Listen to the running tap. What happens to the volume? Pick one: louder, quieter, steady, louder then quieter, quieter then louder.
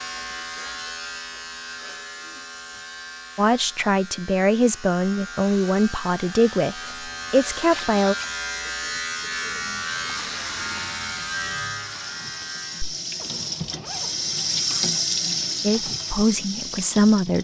louder then quieter.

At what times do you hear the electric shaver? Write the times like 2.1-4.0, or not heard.
0.0-12.9.